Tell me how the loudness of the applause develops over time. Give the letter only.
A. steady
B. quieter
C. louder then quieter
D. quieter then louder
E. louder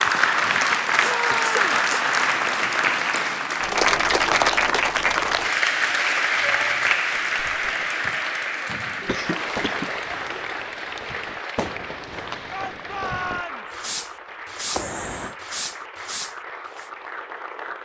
B.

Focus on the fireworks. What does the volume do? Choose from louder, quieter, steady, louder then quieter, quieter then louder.
louder.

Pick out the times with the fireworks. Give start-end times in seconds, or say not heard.
7.0-16.9.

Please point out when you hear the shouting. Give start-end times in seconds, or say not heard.
1.0-1.6, 6.4-7.0, 12.5-13.8.